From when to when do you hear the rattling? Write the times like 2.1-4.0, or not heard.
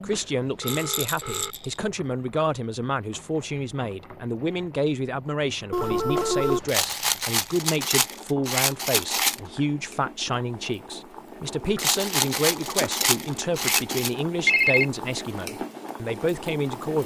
0.6-1.9, 6.7-9.4, 11.8-14.1.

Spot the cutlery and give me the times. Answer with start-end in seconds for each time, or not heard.
not heard.